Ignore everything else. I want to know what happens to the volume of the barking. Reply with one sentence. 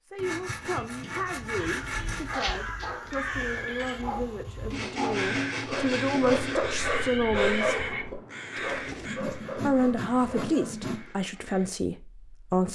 The loudness of the barking goes up, then down.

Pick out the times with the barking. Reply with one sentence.
You can hear the barking from 2.1 to 10.8 s.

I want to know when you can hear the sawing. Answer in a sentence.
You can hear the sawing from 0.1 to 2.4 s, from 4.7 to 6.7 s and from 9.1 to 11.1 s.